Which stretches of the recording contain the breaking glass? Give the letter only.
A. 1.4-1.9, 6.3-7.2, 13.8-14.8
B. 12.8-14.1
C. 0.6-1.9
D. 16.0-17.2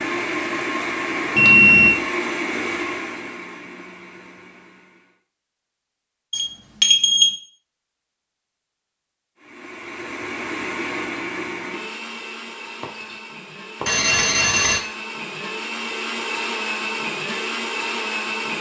B.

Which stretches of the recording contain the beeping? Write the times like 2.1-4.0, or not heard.
1.4-1.9, 6.3-7.2, 13.8-14.8.